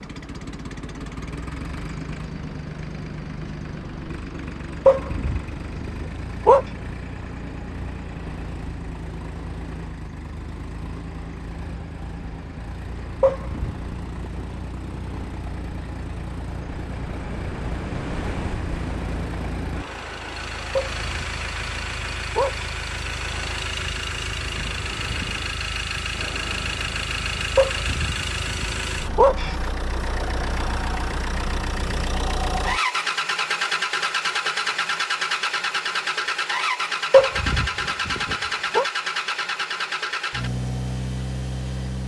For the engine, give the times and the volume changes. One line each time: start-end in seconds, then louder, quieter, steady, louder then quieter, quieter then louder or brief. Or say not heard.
0.0-42.0 louder.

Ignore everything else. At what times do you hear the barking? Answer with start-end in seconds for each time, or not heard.
4.8-6.7, 13.2-14.4, 20.8-22.7, 27.6-29.6, 37.1-38.9.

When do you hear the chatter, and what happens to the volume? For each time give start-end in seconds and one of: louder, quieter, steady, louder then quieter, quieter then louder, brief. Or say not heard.
not heard.